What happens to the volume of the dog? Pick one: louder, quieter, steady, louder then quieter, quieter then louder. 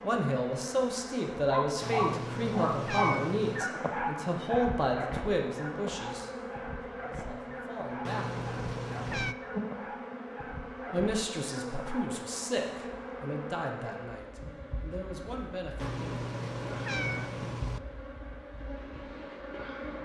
quieter.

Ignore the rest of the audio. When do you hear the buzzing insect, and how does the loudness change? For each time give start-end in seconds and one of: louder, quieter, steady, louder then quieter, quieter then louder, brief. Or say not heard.
0.0-20.0 steady.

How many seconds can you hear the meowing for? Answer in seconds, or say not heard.
5 s.